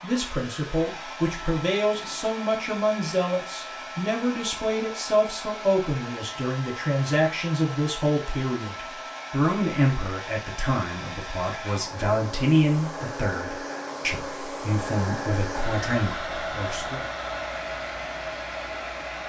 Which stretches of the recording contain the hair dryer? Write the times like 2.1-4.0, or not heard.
0.0-19.2.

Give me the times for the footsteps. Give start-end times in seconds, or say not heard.
not heard.